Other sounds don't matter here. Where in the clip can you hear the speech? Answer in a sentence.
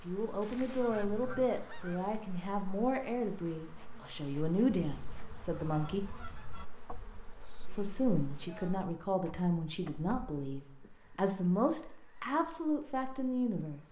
You can hear the speech from 0.0 to 6.0 s and from 7.4 to 13.8 s.